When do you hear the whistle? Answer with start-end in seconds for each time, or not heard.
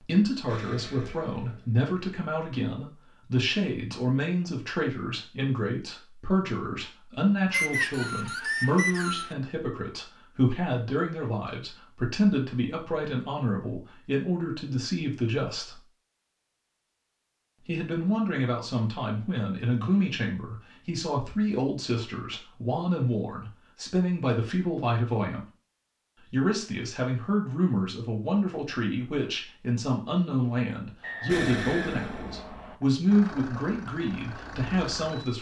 7.5-9.3, 31.0-32.8.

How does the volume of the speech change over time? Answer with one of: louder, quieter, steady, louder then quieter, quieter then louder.
steady.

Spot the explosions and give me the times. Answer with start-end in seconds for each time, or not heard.
0.5-1.9, 31.2-32.8.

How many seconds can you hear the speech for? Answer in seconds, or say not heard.
33 s.